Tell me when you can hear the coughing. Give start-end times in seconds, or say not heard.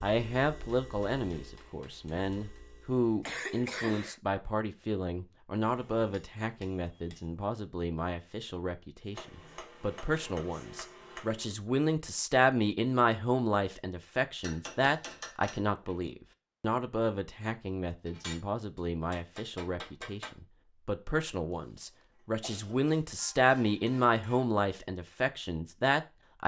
3.2-4.2, 21.9-23.0.